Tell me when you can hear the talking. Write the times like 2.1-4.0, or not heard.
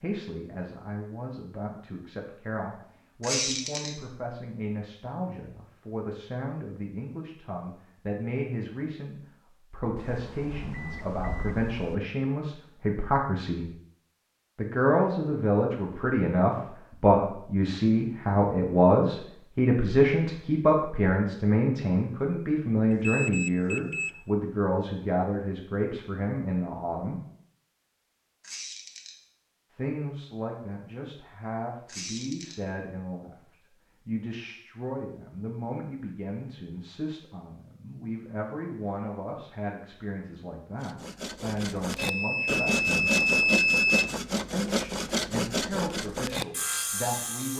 0.0-13.7, 14.6-27.2, 29.7-33.4, 34.0-43.1, 44.5-47.5.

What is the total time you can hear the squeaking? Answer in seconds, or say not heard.
2 s.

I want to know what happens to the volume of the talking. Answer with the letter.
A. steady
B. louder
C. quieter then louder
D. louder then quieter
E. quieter
D.